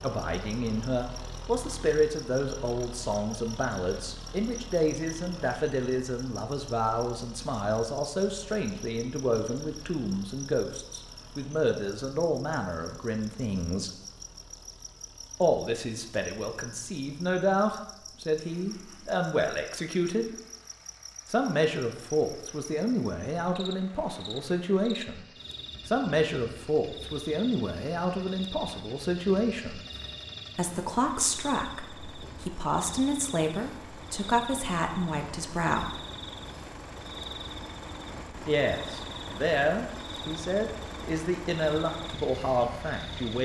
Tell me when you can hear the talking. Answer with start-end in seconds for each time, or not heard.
0.0-13.9, 15.4-20.4, 21.3-25.2, 25.9-29.8, 30.6-36.0, 38.5-43.3.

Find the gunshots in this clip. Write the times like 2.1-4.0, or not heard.
not heard.